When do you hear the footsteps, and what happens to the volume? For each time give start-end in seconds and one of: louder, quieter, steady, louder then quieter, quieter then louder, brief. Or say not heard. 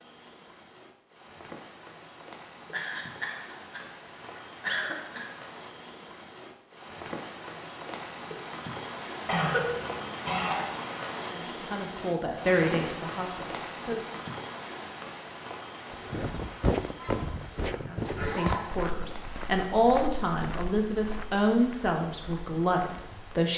15.9-23.4 quieter.